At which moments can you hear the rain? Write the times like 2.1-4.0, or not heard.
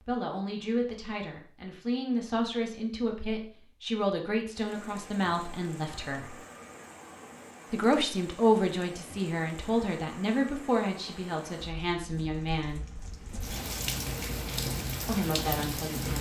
4.5-16.1.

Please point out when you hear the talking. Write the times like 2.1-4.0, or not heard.
0.0-6.3, 7.7-12.8, 15.1-16.1.